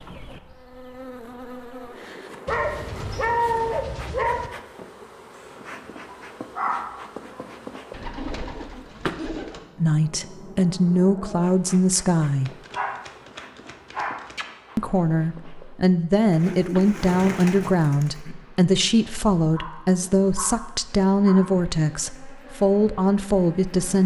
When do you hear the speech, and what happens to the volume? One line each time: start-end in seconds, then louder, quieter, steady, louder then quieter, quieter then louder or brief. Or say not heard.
9.8-12.5 brief
14.8-24.0 steady.